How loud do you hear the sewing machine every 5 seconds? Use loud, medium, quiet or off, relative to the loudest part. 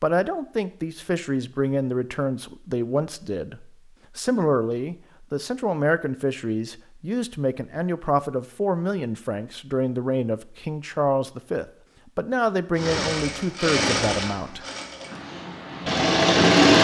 off, off, medium, loud.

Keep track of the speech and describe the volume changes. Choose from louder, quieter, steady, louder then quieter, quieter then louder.
steady.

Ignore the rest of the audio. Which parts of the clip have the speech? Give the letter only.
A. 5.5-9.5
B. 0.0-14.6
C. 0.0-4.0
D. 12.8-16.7
B.